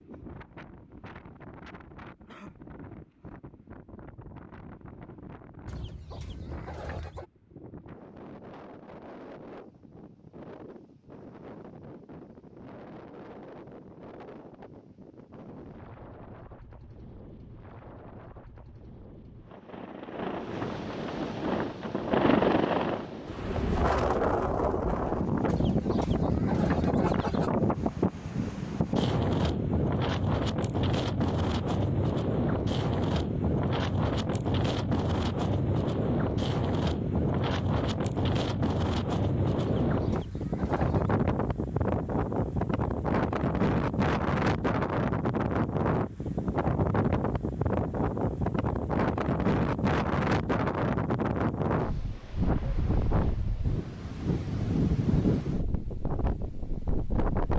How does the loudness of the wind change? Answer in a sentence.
The loudness of the wind goes up.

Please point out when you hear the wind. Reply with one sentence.
The wind can be heard from 0.0 to 57.5 s.